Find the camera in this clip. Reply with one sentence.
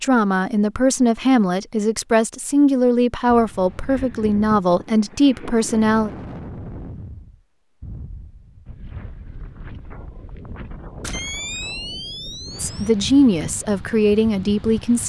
The camera can be heard from 11.0 to 12.8 s.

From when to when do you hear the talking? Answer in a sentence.
The talking can be heard from 0.0 to 6.1 s and from 12.6 to 15.0 s.